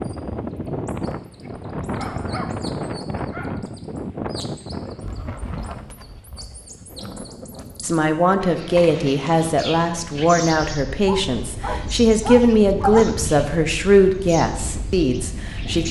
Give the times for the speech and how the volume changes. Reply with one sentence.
You can hear the speech from 7.8 to 15.8 s, at a steady volume.